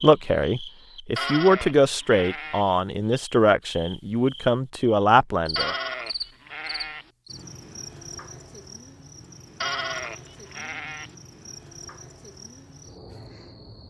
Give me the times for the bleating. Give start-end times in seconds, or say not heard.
1.1-2.7, 5.5-7.1, 9.6-11.2.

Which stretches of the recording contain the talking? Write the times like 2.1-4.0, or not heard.
0.0-5.8.